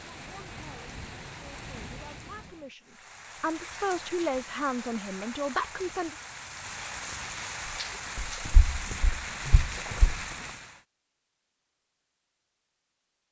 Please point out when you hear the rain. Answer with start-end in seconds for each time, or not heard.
0.0-10.8.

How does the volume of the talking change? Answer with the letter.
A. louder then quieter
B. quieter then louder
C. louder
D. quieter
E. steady
C.